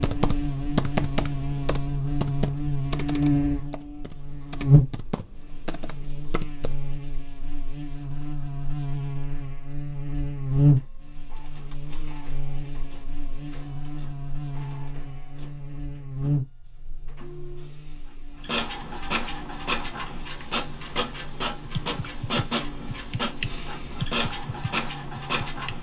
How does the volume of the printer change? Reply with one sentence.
The loudness of the printer goes up.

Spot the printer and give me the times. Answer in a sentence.
The printer can be heard from 10.6 to 25.7 s.